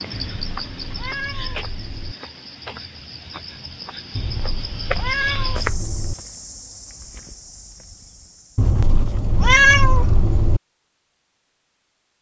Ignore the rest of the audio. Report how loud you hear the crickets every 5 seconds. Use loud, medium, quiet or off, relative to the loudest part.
loud, loud, off.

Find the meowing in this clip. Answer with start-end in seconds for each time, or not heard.
0.1-2.1, 4.2-6.2, 8.6-10.6.